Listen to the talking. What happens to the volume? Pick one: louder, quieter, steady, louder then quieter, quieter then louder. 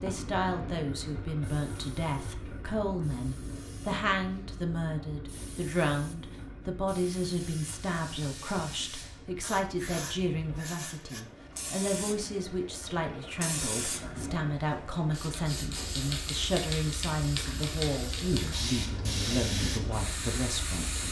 steady.